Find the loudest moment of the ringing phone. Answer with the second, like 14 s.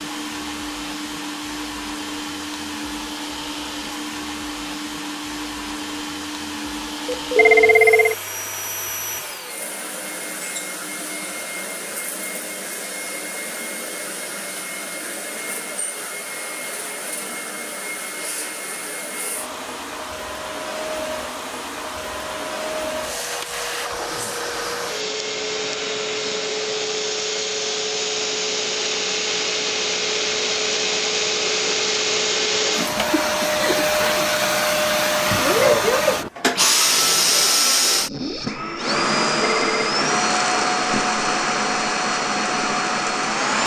8 s.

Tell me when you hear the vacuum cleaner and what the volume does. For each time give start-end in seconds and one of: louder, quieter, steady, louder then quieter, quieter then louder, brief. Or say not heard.
0.0-43.6 louder.